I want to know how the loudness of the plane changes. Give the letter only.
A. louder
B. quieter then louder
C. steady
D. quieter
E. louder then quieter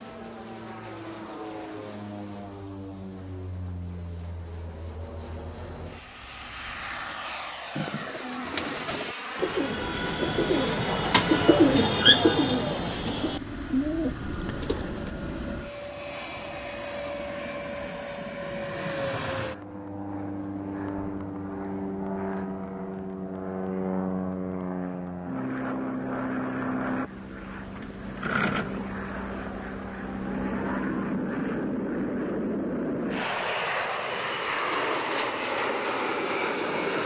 A.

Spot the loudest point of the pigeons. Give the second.
12 s.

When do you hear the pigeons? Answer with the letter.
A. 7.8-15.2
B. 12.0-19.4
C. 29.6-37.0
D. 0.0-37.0
A.